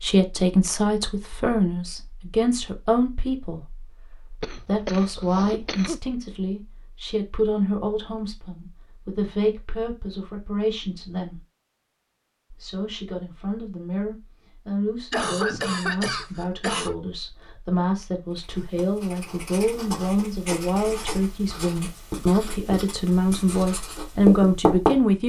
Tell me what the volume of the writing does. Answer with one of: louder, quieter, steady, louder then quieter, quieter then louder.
louder.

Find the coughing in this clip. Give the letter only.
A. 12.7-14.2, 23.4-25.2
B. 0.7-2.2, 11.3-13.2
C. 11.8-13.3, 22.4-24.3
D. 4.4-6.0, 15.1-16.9
D.